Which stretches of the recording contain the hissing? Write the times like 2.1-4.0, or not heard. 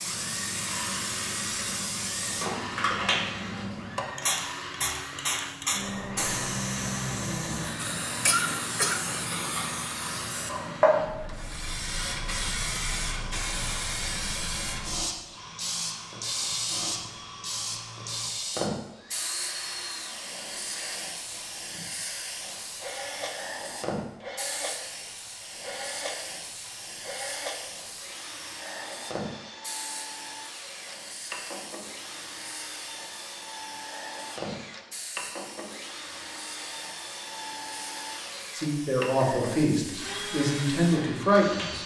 0.0-41.8.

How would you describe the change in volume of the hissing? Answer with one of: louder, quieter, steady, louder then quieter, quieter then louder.
quieter.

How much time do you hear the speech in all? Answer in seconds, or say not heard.
3 s.